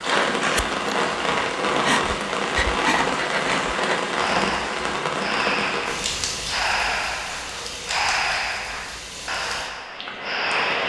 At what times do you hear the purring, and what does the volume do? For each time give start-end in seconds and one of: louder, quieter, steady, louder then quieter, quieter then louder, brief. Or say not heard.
not heard.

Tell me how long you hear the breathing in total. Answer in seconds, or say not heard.
11 s.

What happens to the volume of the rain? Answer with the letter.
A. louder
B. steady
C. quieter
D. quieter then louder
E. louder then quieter
C.